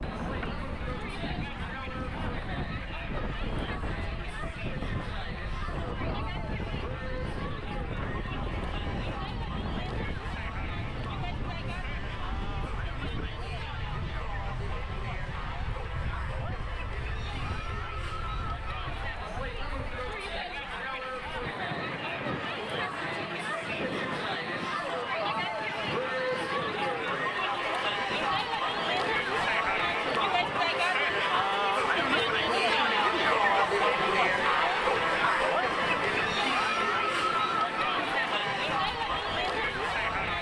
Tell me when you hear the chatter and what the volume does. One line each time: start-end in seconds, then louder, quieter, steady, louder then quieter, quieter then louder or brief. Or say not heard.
0.0-40.3 louder.